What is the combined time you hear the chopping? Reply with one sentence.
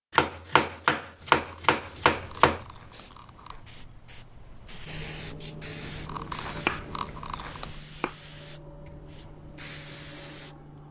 You can hear the chopping for 4 seconds altogether.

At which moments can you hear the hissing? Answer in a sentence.
You can hear the hissing from 2.0 to 10.8 s.